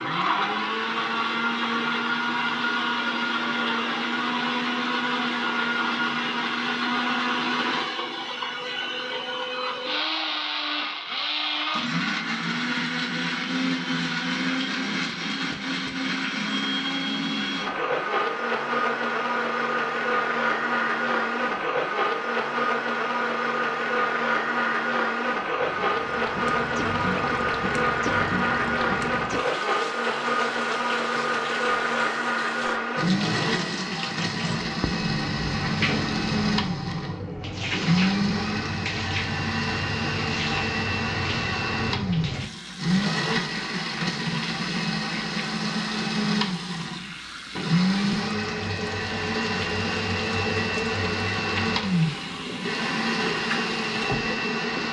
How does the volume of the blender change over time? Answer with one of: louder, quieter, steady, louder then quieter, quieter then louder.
steady.